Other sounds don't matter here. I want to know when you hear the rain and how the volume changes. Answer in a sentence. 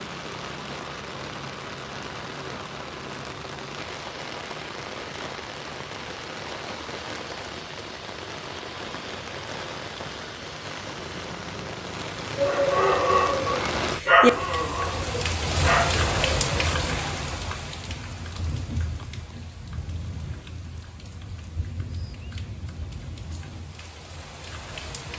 You can hear the rain from 0.0 to 25.1 s, getting louder then quieter.